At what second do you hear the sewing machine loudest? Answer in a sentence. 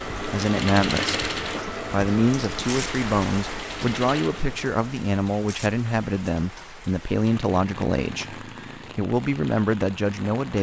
The loudest moment of the sewing machine is at 1 second.